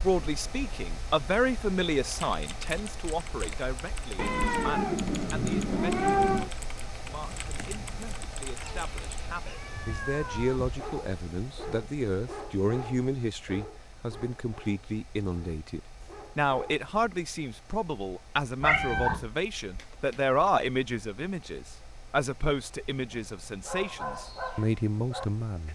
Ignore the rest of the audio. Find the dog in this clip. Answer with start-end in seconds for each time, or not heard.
10.6-16.9, 23.1-25.6.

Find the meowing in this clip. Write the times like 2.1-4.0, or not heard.
4.2-6.5, 8.6-10.9, 18.6-19.2.